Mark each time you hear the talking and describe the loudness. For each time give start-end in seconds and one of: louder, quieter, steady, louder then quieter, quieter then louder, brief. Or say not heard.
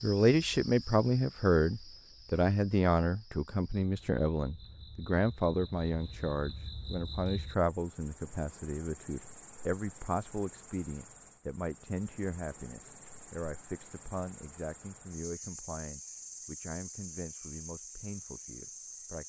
0.0-19.2 quieter.